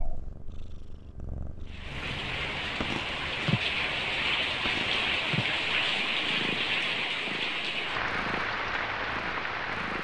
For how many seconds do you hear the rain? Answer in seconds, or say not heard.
8 s.